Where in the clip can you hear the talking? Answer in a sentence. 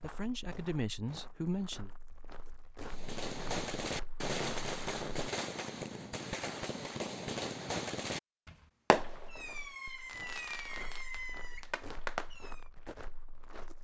You can hear the talking from 0.0 to 1.9 s.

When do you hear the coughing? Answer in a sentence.
You can't hear the coughing here.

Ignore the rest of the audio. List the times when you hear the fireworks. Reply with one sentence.
You can hear the fireworks from 2.8 to 12.6 s.